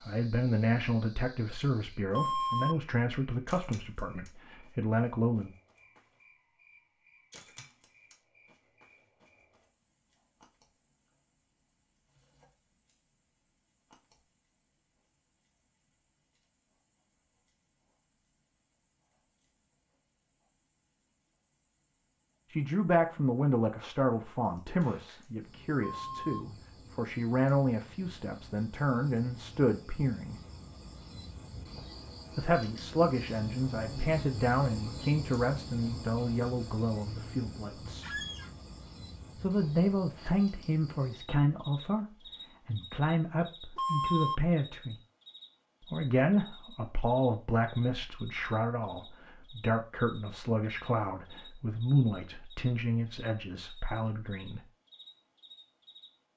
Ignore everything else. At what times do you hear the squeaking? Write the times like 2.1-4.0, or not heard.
38.0-38.5.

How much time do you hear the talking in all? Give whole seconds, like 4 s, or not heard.
33 s.